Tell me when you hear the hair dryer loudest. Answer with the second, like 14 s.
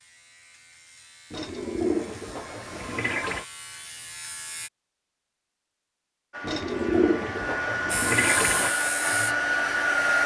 10 s.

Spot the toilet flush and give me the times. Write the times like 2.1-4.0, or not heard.
1.3-3.5, 6.4-8.8.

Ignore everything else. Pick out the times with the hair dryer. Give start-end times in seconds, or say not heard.
6.3-10.2.